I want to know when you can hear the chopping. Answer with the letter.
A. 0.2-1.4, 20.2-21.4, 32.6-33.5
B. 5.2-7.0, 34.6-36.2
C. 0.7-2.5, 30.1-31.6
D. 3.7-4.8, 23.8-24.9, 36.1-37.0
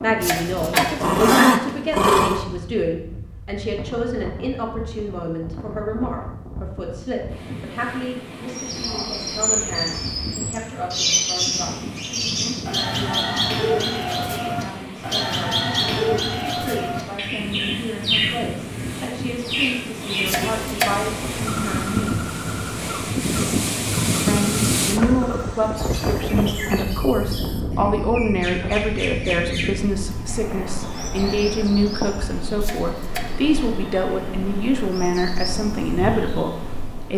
A.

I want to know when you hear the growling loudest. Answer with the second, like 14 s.
1 s.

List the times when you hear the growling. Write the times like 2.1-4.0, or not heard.
0.7-2.5, 30.1-31.6.